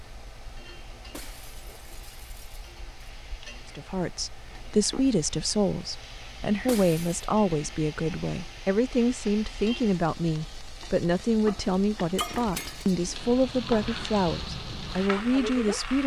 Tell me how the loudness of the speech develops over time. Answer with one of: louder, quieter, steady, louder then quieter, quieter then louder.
steady.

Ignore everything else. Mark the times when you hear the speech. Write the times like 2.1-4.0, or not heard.
3.8-16.0.